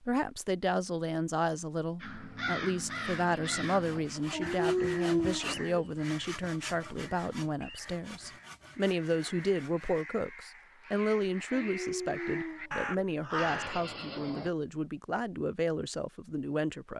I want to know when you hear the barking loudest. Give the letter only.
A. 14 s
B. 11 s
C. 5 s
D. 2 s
C.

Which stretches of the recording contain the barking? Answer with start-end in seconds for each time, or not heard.
4.3-5.6, 11.5-12.9.